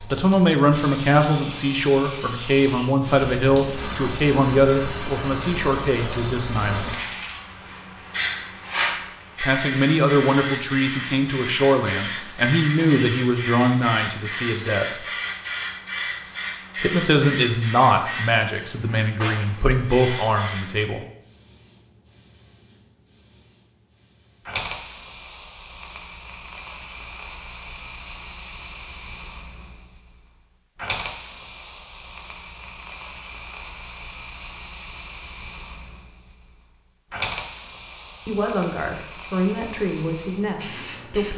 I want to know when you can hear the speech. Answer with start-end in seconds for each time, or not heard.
0.1-7.0, 9.4-14.8, 16.8-21.0, 38.2-41.3.